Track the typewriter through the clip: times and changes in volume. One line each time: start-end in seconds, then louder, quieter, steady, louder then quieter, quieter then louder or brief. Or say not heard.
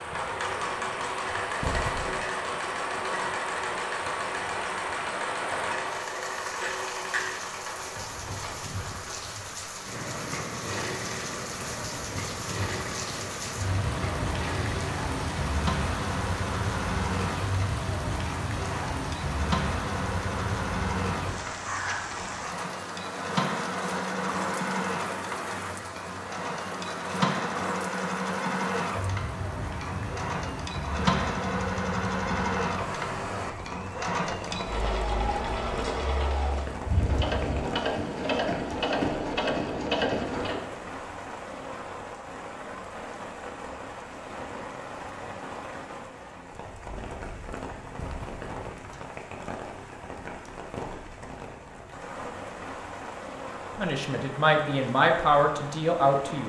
not heard.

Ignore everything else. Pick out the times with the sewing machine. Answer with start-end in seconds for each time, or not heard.
0.0-40.8.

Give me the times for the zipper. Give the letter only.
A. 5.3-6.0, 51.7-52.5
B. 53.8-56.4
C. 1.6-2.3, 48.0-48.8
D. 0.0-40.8
C.